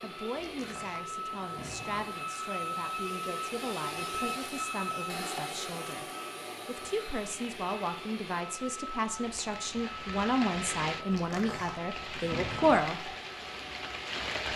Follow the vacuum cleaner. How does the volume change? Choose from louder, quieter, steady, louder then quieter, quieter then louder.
quieter.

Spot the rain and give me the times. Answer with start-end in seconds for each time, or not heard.
7.4-14.5.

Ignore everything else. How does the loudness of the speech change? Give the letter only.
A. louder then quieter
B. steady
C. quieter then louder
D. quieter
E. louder
E.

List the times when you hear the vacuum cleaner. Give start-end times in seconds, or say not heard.
0.0-14.2.